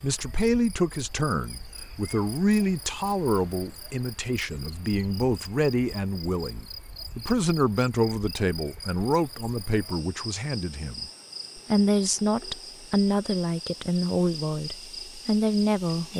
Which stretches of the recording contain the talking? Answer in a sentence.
The talking can be heard from 0.0 to 16.1 s.